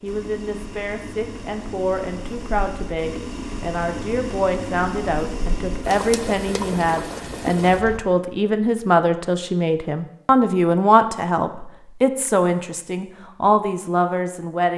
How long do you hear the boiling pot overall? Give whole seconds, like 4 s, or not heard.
8 s.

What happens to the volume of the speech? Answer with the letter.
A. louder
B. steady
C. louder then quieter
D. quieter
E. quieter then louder
A.